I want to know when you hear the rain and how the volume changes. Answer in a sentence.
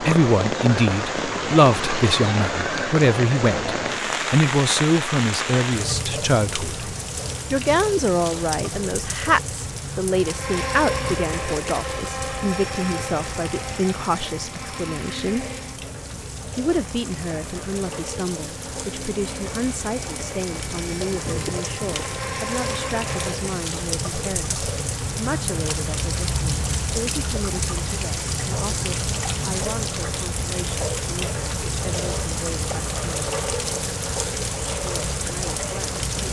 You can hear the rain from 0.0 to 36.2 s, getting quieter then louder.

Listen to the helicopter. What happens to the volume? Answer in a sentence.
The volume of the helicopter goes down, then up.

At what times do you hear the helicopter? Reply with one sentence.
The helicopter can be heard from 10.1 to 23.6 s.